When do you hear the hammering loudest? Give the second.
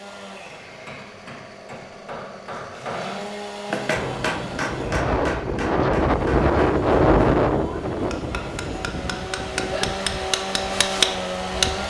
11 s.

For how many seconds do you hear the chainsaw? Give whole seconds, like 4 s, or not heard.
12 s.